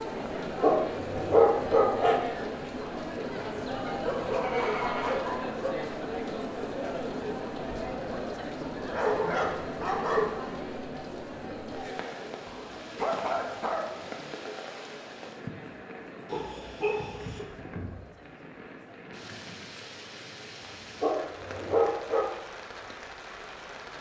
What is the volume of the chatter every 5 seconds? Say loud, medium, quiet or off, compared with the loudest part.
loud, loud, medium, quiet, quiet.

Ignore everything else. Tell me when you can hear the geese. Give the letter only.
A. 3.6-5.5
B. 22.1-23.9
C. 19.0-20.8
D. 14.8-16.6
A.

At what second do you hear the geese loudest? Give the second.
5 s.